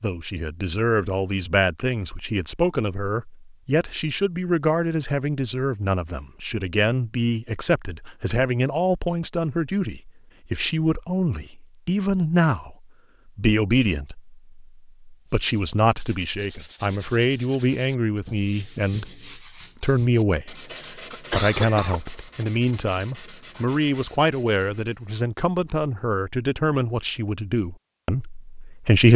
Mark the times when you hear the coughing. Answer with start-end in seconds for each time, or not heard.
20.8-22.0.